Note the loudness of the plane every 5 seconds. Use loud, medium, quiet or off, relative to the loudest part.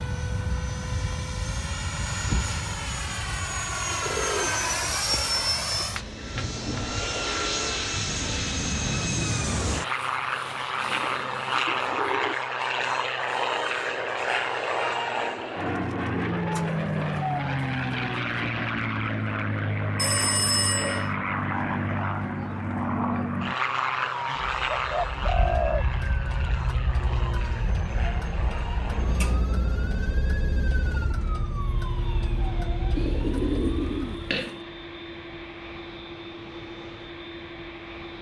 loud, loud, loud, loud, loud, medium, quiet, quiet.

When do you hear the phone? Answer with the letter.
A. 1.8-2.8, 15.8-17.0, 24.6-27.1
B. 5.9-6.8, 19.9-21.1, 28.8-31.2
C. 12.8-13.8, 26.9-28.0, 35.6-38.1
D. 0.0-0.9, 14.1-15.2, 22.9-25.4
B.